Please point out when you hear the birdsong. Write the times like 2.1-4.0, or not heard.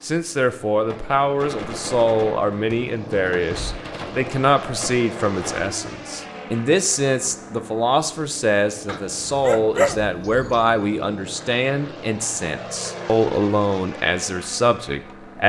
not heard.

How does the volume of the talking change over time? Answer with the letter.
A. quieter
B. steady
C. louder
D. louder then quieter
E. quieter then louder
B.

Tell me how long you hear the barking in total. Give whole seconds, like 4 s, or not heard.
2 s.